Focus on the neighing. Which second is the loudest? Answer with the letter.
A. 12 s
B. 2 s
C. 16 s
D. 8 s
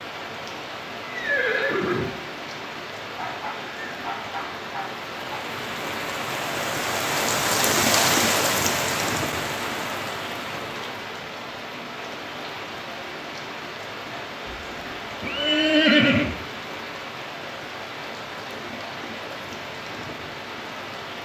C.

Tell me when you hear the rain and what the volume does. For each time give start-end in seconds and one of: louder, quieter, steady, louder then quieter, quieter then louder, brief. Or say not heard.
0.0-21.1 louder then quieter.